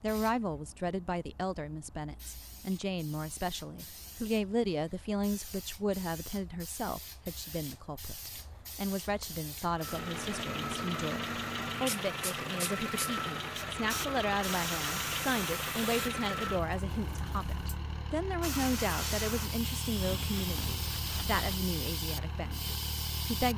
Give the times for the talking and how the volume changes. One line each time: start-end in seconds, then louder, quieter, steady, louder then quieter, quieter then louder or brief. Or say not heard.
0.0-23.5 steady.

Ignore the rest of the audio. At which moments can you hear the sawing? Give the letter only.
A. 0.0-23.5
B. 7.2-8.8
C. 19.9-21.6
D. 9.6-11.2
C.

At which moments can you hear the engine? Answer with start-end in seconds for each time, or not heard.
9.7-23.5.